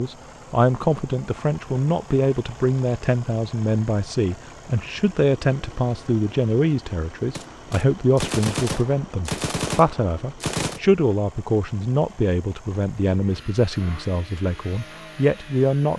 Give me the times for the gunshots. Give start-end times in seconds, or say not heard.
7.3-10.8.